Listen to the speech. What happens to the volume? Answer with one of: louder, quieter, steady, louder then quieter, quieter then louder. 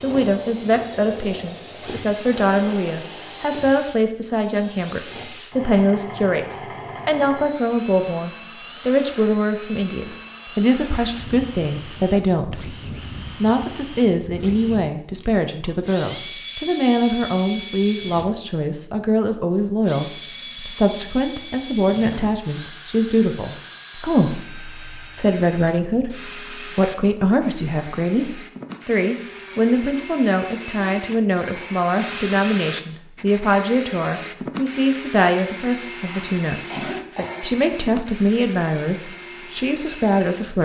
steady.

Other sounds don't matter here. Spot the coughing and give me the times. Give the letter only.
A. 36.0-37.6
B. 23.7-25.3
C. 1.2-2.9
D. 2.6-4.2
A.